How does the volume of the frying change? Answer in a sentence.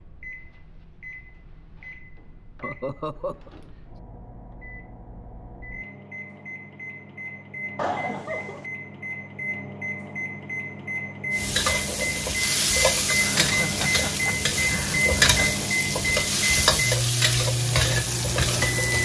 The volume of the frying stays about the same.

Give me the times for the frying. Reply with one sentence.
The frying can be heard from 11.3 to 19.0 s.